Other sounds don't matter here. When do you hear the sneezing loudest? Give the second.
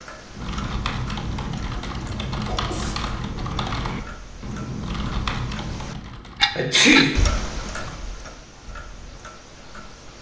7 s.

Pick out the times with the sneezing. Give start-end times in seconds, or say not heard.
2.5-3.0, 6.5-7.2.